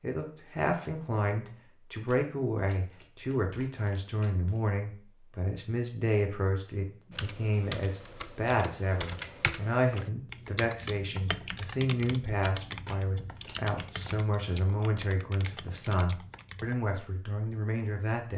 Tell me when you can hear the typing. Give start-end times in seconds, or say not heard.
7.1-16.8.